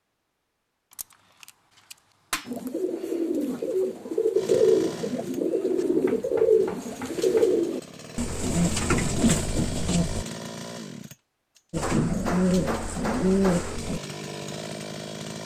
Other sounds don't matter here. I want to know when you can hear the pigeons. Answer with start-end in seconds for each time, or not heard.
2.5-10.2, 11.7-14.0.